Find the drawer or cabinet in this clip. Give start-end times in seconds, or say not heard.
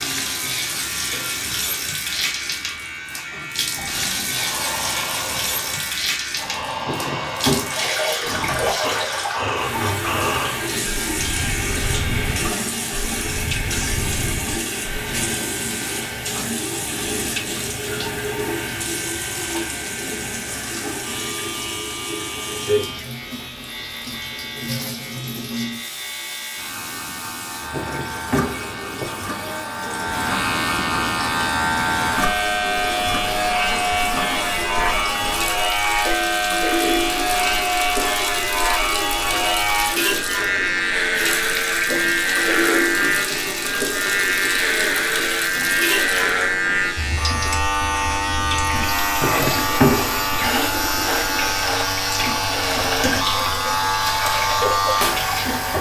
6.8-7.7, 27.7-29.1, 49.2-50.5.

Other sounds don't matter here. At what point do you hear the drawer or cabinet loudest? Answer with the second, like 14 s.
50 s.